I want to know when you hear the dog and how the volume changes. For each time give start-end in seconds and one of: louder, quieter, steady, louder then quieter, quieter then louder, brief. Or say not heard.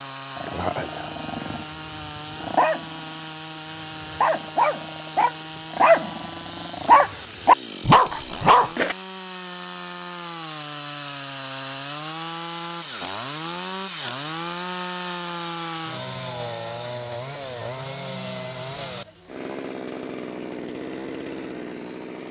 0.3-8.9 louder.